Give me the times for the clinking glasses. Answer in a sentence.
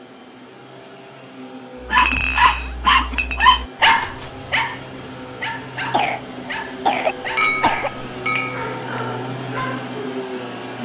You can hear the clinking glasses from 1.9 to 3.5 s and from 7.3 to 8.7 s.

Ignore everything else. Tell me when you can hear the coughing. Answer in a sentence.
The coughing can be heard from 1.9 to 3.5 s and from 5.9 to 7.9 s.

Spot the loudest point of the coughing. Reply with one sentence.
The loudest moment of the coughing is at 7 seconds.